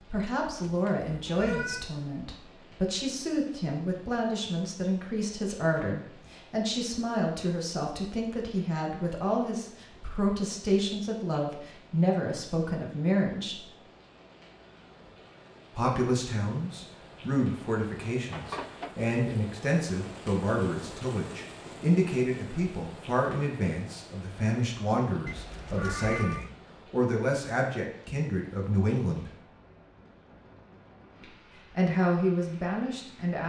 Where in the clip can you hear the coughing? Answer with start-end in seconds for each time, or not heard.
not heard.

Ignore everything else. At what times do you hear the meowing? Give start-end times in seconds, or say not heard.
0.7-1.9, 18.3-18.9, 25.2-26.5.